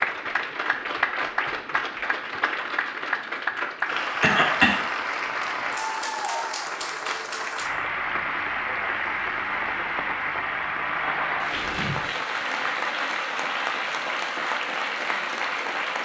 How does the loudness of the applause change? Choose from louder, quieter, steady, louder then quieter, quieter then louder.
steady.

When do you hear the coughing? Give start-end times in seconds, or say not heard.
4.0-4.8, 11.5-12.1.